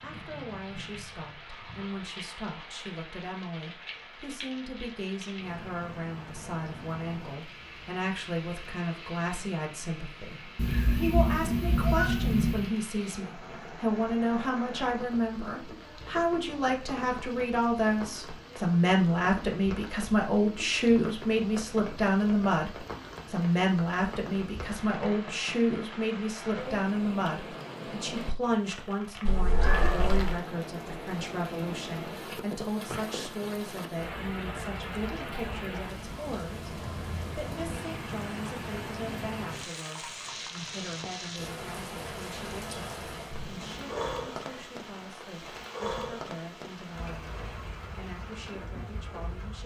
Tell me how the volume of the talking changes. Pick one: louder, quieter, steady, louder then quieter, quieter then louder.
louder then quieter.